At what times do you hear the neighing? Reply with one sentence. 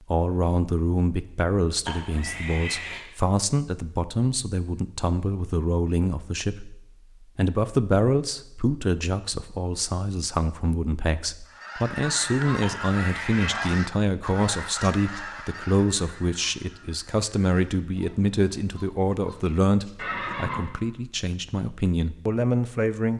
The neighing can be heard from 1.9 to 3.0 s, from 12.6 to 13.5 s and from 19.9 to 20.7 s.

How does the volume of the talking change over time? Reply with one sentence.
The volume of the talking stays about the same.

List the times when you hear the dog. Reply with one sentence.
You can't hear the dog here.